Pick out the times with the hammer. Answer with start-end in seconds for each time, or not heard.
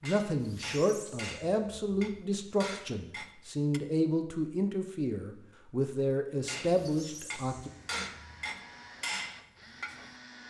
0.0-3.8, 6.5-10.2.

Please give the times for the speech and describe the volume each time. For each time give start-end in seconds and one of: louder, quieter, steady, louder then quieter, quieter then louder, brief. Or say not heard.
0.0-7.7 steady.